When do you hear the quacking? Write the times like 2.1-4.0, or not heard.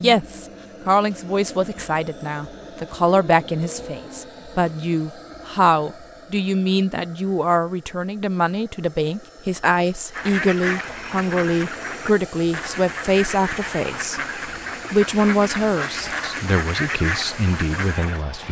10.1-18.2.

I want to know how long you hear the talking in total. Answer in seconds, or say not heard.
18 s.